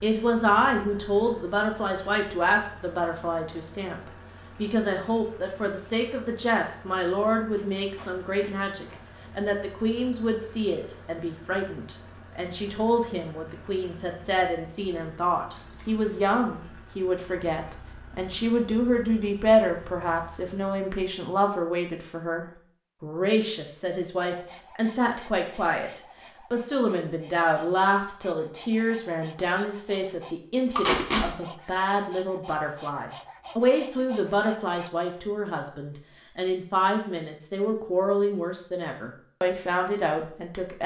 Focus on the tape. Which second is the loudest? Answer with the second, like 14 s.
31 s.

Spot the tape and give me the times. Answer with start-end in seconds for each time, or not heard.
7.5-9.0, 15.5-15.9, 30.8-31.2.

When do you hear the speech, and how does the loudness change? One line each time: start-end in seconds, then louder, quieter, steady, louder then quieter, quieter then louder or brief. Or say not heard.
0.0-40.8 steady.